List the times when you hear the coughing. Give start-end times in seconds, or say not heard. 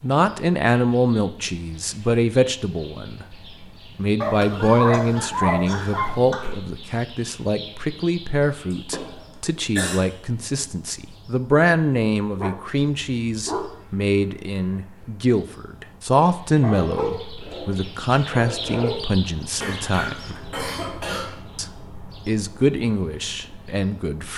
4.4-6.5, 8.7-10.0, 19.6-21.3.